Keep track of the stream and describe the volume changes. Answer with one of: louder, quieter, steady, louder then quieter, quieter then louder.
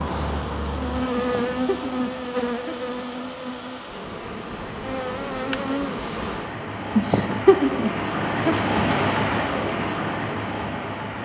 louder.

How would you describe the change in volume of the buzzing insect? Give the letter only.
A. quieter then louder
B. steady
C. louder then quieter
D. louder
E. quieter
A.